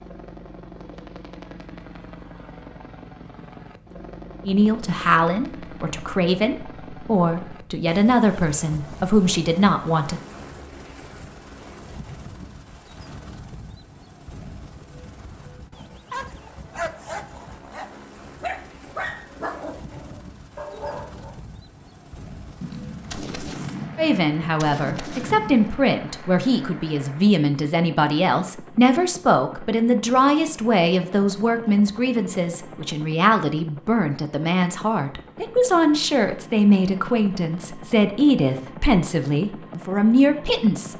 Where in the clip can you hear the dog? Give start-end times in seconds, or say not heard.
16.1-21.4.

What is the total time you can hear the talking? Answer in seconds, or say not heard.
23 s.